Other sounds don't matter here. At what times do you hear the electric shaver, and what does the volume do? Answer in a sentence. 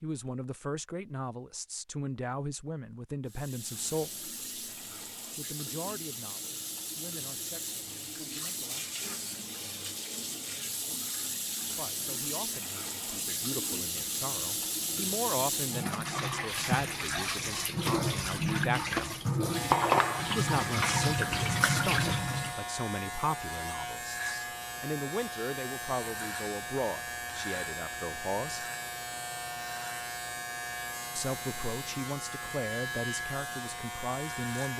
You can hear the electric shaver from 19.5 to 34.7 s, at a steady volume.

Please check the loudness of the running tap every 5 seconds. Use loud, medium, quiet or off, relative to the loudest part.
quiet, medium, medium, loud, loud, off, off.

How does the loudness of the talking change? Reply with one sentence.
The loudness of the talking goes down, then up.